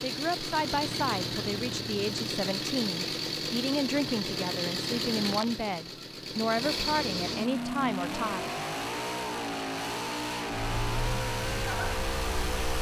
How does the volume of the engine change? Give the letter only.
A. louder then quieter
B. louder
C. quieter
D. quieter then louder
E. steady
E.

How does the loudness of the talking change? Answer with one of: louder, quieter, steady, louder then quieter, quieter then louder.
steady.